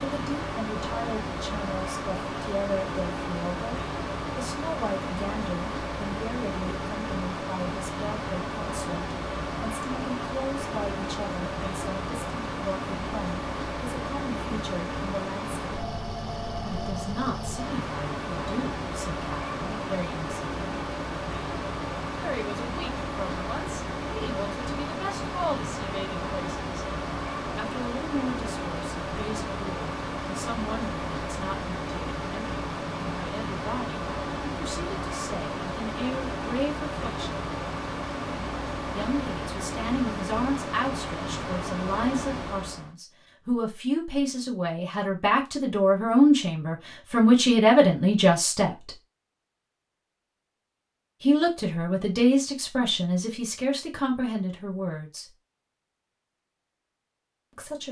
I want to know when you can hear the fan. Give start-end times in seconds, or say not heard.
0.0-43.0.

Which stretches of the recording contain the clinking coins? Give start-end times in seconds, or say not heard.
not heard.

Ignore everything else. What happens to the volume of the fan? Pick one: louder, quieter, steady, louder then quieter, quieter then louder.
steady.